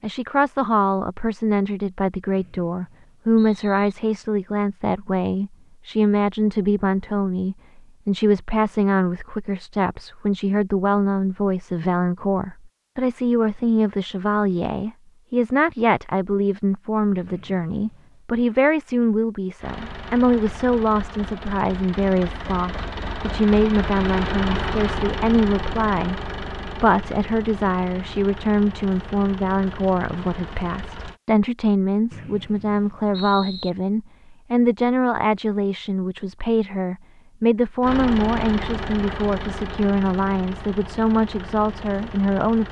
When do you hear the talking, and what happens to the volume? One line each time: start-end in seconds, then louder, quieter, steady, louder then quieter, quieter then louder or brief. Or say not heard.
0.0-42.6 steady.